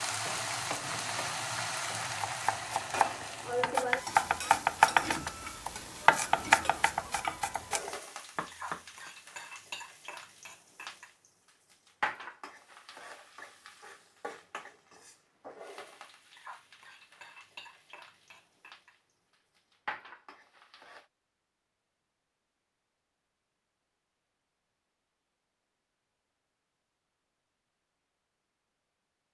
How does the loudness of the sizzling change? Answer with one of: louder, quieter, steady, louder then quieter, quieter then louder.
quieter.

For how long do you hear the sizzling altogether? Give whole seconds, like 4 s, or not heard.
21 s.